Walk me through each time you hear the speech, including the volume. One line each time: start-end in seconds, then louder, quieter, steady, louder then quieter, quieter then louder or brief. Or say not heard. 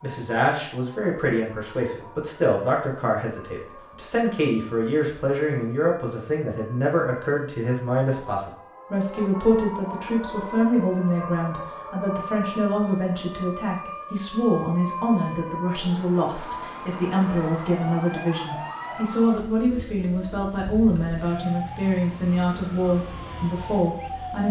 0.0-24.4 steady.